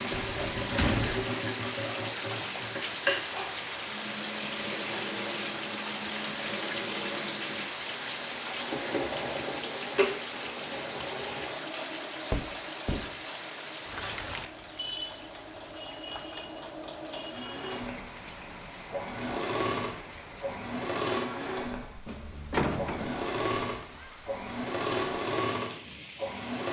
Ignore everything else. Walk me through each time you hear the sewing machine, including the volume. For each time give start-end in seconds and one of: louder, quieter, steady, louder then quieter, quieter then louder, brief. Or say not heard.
0.0-26.6 quieter then louder.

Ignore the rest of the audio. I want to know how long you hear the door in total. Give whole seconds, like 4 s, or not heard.
3 s.